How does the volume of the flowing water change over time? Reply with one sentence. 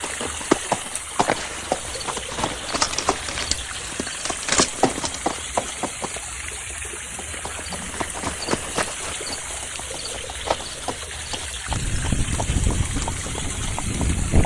The volume of the flowing water stays about the same.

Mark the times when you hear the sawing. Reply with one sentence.
The sawing can't be heard in this clip.